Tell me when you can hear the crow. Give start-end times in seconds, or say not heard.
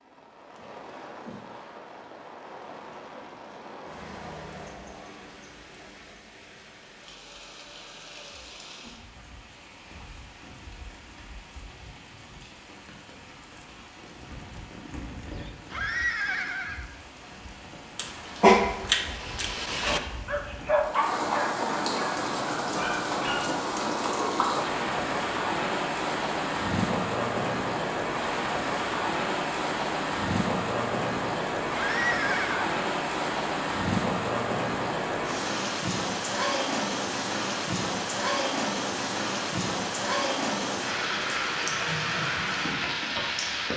not heard.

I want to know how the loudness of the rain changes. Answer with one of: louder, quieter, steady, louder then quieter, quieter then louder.
louder.